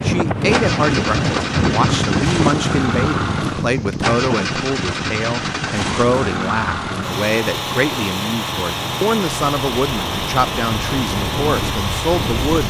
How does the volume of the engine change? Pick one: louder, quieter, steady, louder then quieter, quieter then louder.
steady.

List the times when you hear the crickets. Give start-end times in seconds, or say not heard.
not heard.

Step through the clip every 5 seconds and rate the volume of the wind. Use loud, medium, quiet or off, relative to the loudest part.
loud, medium, medium.